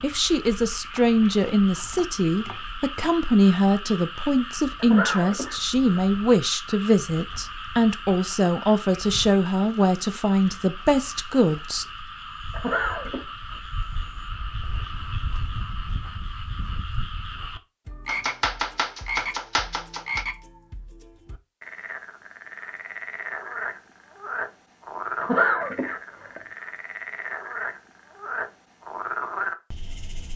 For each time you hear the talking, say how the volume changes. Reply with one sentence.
You can hear the talking from 0.0 to 11.8 s, at a steady volume.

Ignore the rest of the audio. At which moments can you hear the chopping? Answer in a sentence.
You can hear the chopping from 0.9 to 3.1 s and from 18.1 to 20.2 s.